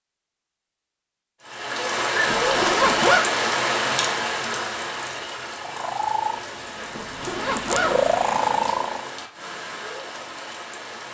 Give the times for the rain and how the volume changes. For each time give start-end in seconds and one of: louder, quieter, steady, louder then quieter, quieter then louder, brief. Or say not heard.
1.4-11.0 quieter.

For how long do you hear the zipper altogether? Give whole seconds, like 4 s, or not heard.
2 s.